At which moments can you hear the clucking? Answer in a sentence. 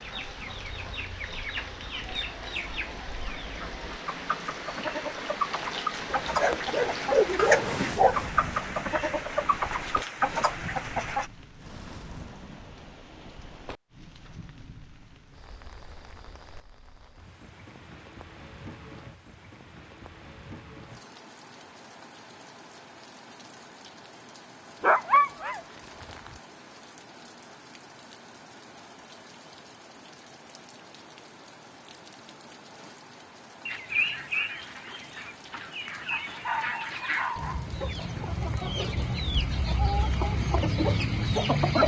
The clucking can be heard from 0.0 to 11.3 s and from 33.6 to 41.8 s.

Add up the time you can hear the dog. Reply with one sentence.
You can hear the dog for 5 seconds altogether.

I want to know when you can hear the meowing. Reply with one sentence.
You can hear the meowing from 7.3 to 8.1 s.